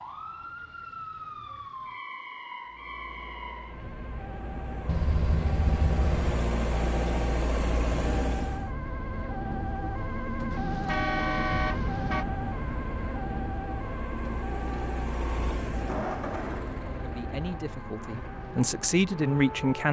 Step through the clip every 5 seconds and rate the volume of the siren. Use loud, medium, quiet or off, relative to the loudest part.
medium, loud, loud, medium.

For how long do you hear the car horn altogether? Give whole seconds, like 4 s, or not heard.
3 s.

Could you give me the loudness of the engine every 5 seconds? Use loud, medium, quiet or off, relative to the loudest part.
quiet, loud, medium, medium.